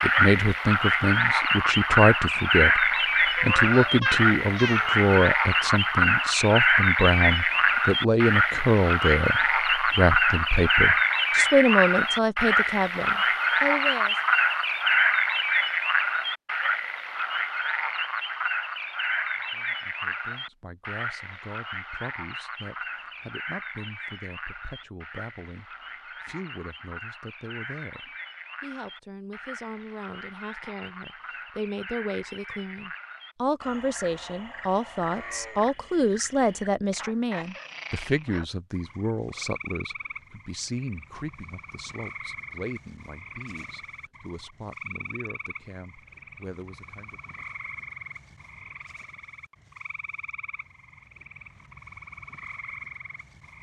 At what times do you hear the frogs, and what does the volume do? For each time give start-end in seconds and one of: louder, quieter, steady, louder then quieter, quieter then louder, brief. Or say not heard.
0.0-53.5 quieter.